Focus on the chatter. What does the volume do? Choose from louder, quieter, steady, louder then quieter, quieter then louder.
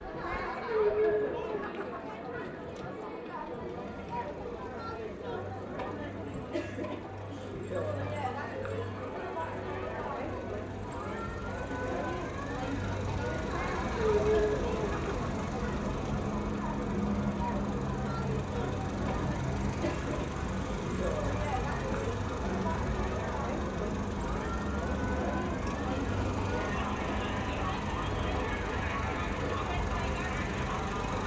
steady.